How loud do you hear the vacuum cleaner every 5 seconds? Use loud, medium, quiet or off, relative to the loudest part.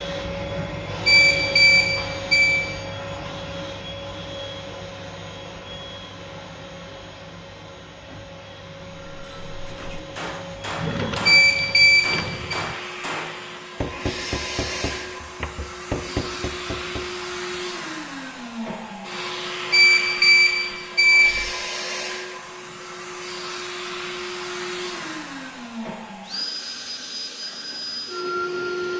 loud, medium, loud, loud, loud, loud.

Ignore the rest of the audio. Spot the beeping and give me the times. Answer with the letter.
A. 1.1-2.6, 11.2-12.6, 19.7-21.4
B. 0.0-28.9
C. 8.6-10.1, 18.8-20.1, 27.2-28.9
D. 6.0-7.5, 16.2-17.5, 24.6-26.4
A.